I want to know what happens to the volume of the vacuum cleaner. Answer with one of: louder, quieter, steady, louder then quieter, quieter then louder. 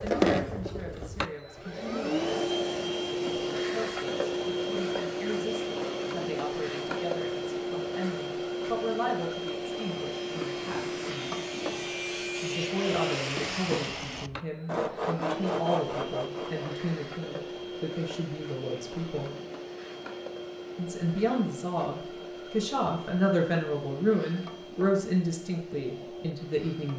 quieter.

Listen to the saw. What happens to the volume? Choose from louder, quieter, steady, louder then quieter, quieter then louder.
louder.